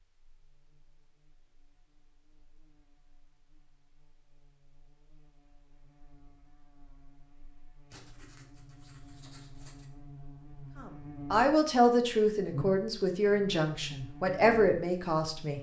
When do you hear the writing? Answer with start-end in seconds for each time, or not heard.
7.9-9.8.